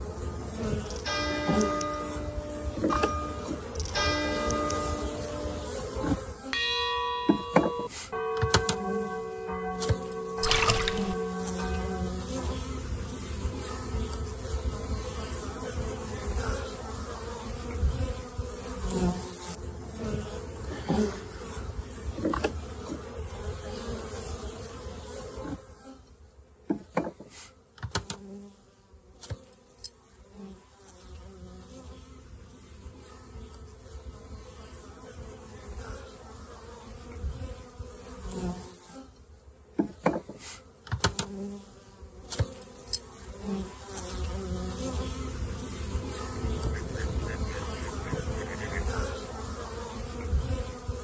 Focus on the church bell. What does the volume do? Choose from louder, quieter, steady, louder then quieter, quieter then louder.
steady.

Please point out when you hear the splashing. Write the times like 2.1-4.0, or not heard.
10.4-11.2.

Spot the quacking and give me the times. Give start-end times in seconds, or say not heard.
46.4-48.9.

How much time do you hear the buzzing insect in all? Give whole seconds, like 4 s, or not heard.
51 s.